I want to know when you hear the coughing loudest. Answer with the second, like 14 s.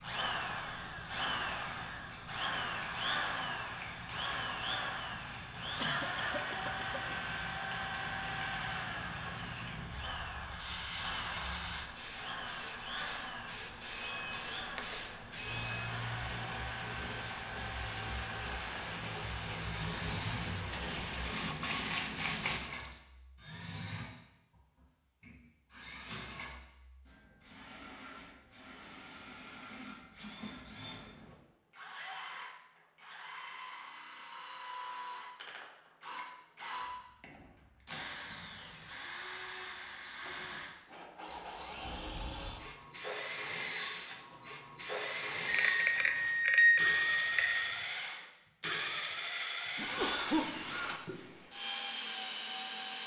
50 s.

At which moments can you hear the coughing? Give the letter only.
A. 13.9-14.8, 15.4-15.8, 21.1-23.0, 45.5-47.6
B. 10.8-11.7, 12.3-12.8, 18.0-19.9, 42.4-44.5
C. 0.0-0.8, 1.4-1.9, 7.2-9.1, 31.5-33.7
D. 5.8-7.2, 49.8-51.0
D.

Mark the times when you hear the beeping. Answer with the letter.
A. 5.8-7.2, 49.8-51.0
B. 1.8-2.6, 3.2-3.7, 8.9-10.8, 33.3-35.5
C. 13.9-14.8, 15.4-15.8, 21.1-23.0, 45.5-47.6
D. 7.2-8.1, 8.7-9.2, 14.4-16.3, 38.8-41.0
C.